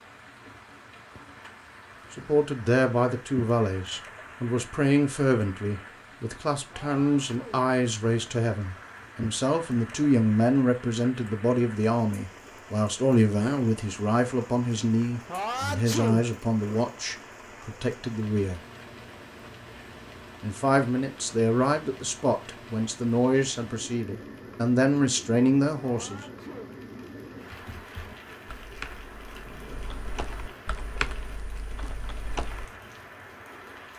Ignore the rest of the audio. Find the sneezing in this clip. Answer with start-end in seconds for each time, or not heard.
6.7-7.7, 15.2-16.3, 25.8-26.8.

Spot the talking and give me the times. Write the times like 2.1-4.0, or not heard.
2.1-18.6, 20.4-26.2.